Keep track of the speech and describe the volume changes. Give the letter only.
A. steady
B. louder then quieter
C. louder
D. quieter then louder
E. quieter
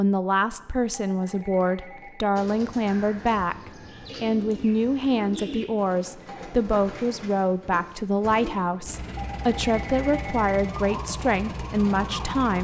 A.